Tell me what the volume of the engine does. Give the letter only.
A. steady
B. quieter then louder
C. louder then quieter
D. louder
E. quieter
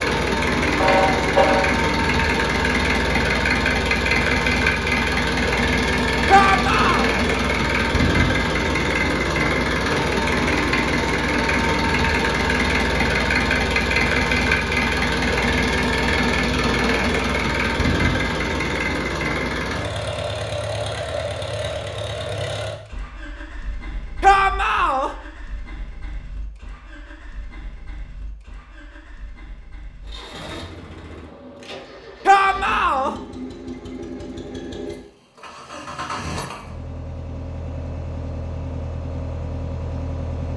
B.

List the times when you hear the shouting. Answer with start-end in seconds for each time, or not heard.
6.2-7.1, 24.2-25.1, 32.2-33.1.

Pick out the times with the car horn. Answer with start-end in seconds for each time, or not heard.
0.8-1.8.